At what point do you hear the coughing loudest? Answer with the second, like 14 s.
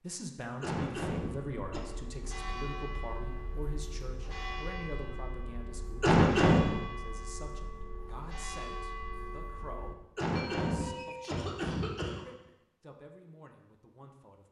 6 s.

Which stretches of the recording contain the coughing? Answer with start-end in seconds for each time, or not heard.
0.6-1.8, 6.0-6.7, 10.2-12.2.